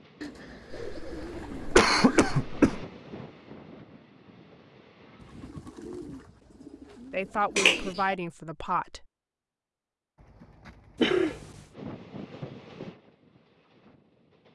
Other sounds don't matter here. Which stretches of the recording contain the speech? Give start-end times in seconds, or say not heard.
7.1-9.1.